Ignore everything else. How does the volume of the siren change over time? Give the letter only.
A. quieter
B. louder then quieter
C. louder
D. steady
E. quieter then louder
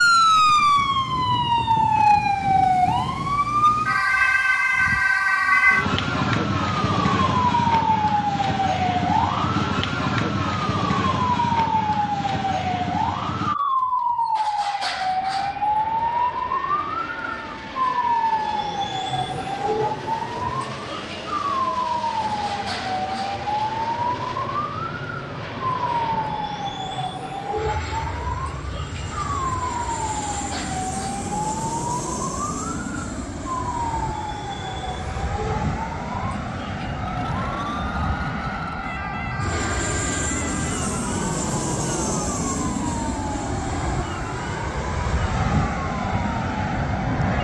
A.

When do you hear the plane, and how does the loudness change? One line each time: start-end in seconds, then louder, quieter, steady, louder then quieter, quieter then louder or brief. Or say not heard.
14.8-47.3 louder.